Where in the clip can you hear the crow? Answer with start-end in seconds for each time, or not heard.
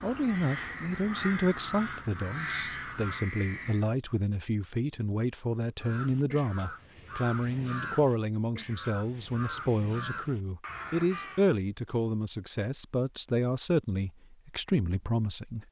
0.0-3.9, 5.8-11.5.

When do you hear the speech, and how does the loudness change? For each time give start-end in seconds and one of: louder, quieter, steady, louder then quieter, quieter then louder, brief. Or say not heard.
0.0-15.6 steady.